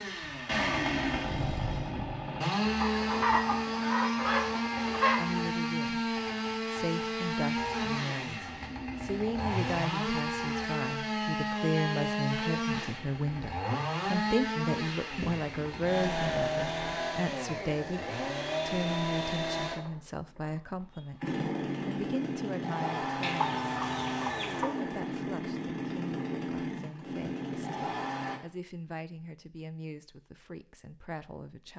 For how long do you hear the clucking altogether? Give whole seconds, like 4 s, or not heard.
4 s.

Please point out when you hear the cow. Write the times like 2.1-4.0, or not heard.
not heard.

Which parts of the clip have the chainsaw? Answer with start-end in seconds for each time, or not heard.
0.0-28.4.